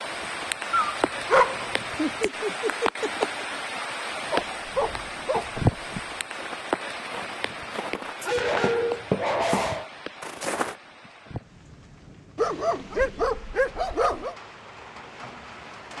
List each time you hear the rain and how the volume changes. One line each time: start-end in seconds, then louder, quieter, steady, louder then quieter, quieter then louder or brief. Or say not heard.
0.0-15.9 quieter.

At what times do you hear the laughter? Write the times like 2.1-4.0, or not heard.
1.4-3.5.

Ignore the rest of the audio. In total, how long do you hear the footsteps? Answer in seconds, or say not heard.
5 s.